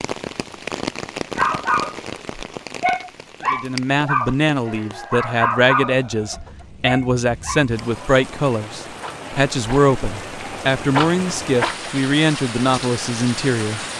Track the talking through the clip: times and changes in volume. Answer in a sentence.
You can hear the talking from 3.5 to 13.9 s, at a steady volume.